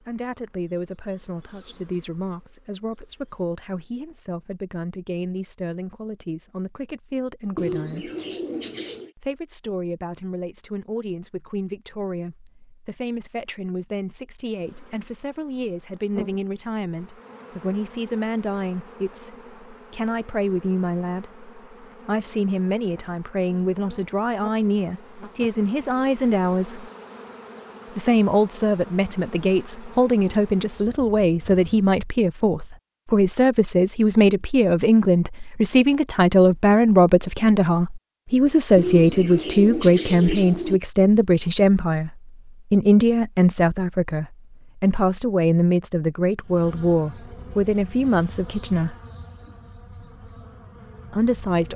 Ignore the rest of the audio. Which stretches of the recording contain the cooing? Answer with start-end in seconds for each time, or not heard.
7.5-9.1, 38.8-40.8.